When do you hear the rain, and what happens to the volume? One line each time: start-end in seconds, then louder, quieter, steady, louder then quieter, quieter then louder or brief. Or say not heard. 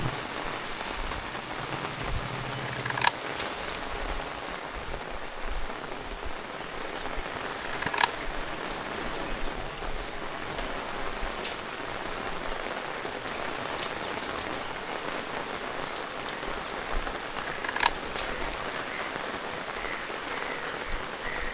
0.0-21.4 steady.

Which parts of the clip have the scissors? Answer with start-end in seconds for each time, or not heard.
2.6-3.7, 7.5-8.1, 17.4-18.3.